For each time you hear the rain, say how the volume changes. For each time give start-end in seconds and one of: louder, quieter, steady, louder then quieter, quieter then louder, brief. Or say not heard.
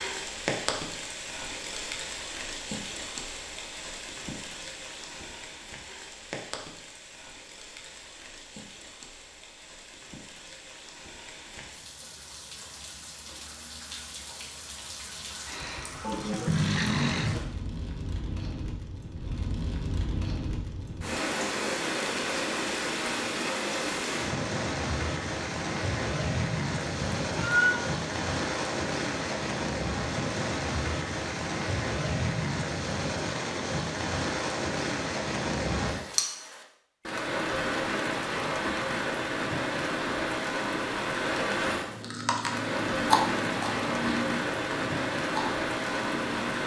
0.0-46.6 louder.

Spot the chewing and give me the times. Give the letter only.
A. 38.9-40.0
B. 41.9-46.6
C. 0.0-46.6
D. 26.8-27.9
B.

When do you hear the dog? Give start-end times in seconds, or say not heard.
not heard.